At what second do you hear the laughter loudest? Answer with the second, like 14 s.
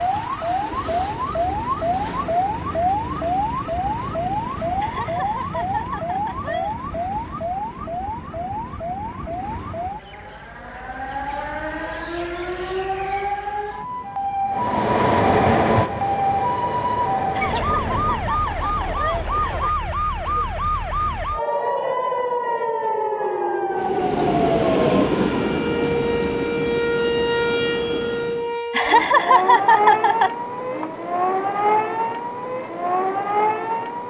29 s.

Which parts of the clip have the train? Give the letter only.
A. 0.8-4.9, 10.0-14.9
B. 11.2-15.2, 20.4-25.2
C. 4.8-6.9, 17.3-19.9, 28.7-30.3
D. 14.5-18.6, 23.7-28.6
D.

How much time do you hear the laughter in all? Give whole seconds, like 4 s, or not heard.
6 s.